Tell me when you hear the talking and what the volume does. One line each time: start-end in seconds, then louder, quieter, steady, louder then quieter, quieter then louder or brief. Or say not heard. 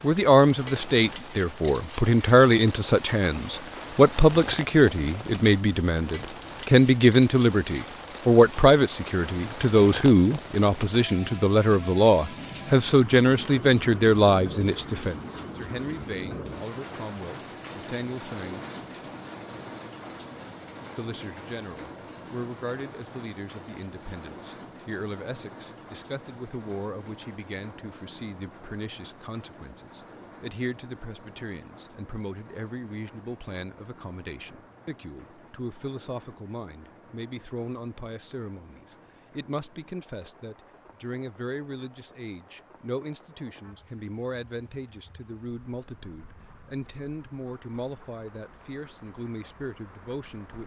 0.0-18.8 quieter
20.9-50.6 steady.